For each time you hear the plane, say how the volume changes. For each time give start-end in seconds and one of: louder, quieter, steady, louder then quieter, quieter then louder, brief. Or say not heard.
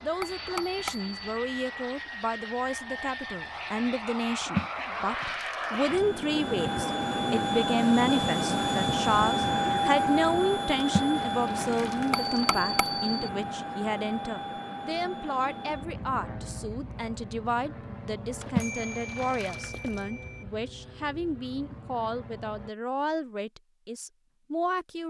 0.0-22.7 louder then quieter.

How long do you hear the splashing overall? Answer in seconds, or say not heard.
5 s.